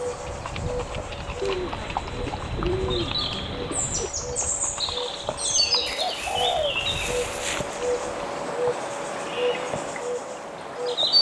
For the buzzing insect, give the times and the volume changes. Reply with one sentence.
The buzzing insect can be heard from 0.0 to 11.1 s, getting louder.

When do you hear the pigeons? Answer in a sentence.
You can hear the pigeons from 1.4 to 4.1 s and from 5.8 to 7.8 s.